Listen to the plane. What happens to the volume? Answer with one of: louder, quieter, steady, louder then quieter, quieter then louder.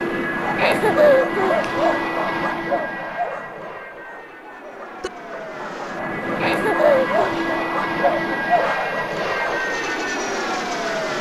quieter then louder.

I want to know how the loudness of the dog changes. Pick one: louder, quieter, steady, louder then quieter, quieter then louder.
quieter then louder.